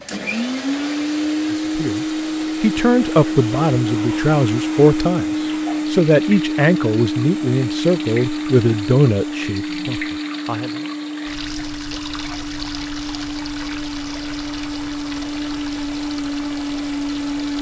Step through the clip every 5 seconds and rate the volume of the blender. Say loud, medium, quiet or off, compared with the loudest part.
loud, loud, medium, loud.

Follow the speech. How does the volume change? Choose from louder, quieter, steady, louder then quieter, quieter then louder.
steady.